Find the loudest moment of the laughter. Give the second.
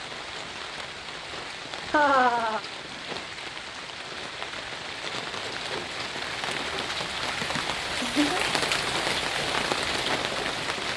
2 s.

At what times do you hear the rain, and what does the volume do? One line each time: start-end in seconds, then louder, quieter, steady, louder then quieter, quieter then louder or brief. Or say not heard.
0.0-10.9 louder.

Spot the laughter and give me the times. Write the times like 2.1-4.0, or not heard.
1.9-2.6, 7.4-8.4.